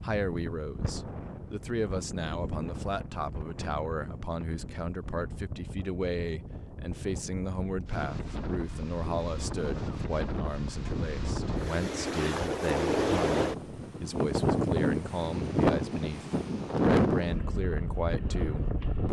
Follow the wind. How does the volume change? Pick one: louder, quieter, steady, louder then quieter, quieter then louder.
louder.